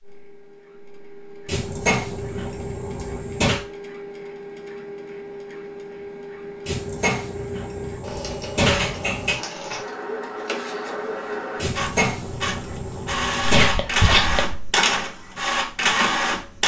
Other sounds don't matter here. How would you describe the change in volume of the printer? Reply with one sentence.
The volume of the printer goes up.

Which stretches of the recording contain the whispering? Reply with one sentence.
The whispering can be heard from 13.6 to 14.7 s.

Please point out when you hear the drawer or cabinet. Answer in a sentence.
You can hear the drawer or cabinet from 1.4 to 3.6 s, from 6.7 to 9.3 s and from 11.6 to 13.8 s.